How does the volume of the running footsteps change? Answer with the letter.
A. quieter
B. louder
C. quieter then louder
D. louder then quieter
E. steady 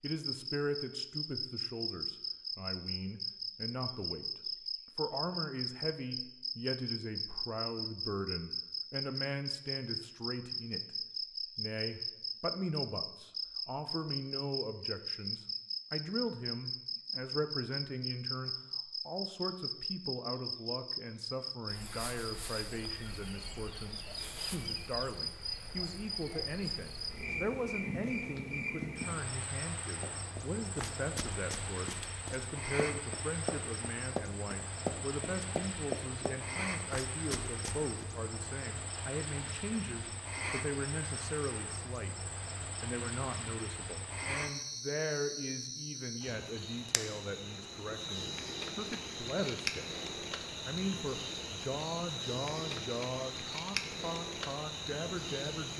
D.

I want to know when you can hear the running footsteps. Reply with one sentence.
You can hear the running footsteps from 30.0 to 38.0 s.